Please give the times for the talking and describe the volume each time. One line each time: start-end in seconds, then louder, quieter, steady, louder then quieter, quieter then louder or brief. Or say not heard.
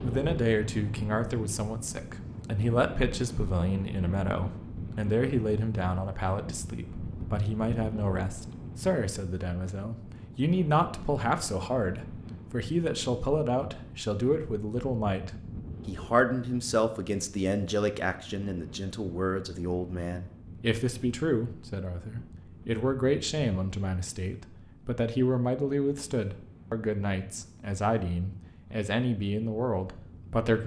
0.0-30.6 steady.